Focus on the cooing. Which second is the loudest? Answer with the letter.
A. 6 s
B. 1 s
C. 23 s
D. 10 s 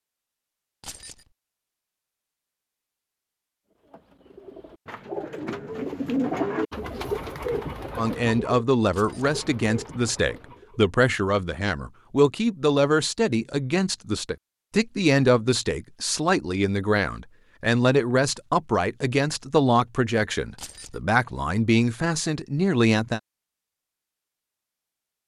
A.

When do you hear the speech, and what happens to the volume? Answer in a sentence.
You can hear the speech from 8.0 to 23.2 s, at a steady volume.